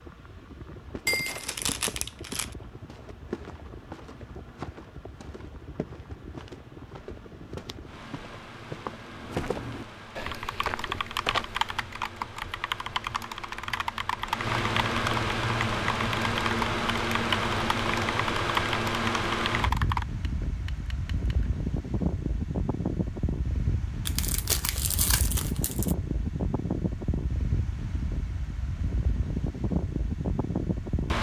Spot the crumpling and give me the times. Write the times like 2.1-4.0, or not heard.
1.1-2.5, 24.1-25.9.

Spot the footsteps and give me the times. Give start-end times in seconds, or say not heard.
0.8-11.8.